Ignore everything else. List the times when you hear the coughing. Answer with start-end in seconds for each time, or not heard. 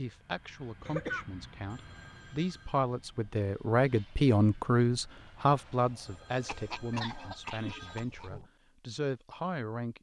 0.8-1.2, 6.5-8.5.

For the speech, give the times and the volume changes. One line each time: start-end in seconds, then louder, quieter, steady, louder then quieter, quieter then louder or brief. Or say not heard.
0.0-9.9 louder then quieter.